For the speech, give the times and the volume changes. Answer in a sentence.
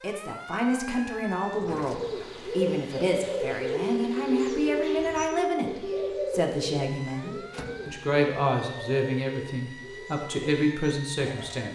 You can hear the speech from 0.0 to 11.6 s, at a steady volume.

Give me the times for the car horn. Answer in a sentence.
You can't hear the car horn here.